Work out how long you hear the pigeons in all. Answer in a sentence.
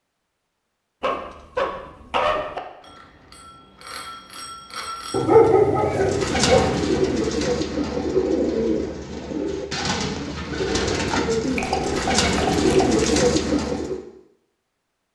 The pigeons can be heard for 8 seconds in total.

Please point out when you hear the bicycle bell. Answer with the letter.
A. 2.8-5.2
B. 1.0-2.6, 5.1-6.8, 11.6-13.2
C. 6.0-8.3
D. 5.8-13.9
A.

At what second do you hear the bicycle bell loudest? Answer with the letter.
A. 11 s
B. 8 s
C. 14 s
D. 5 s
D.